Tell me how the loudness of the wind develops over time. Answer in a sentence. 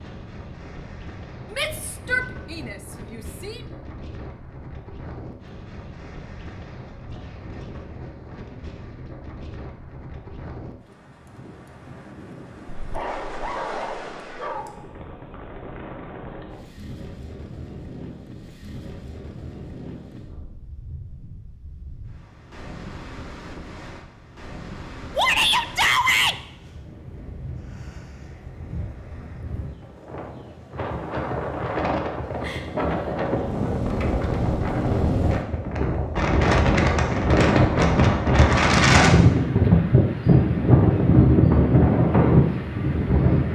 The loudness of the wind goes up.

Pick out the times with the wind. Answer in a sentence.
The wind can be heard from 0.0 to 43.5 s.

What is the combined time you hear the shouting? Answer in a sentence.
The shouting can be heard for 3 seconds in total.